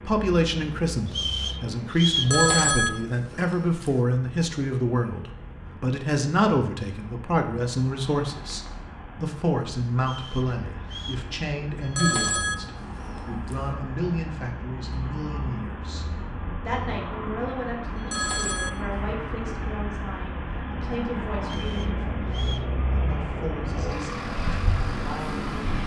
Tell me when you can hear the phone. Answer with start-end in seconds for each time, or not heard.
2.1-3.9, 11.8-13.6, 17.9-18.7.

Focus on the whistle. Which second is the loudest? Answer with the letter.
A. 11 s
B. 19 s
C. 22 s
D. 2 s
D.